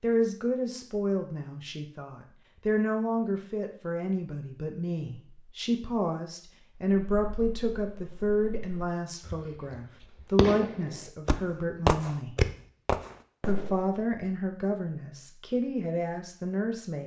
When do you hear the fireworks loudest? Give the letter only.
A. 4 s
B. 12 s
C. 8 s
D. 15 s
B.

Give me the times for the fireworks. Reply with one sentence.
You can hear the fireworks from 7.0 to 13.8 s.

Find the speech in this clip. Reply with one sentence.
You can hear the speech from 0.0 to 12.3 s and from 13.4 to 17.0 s.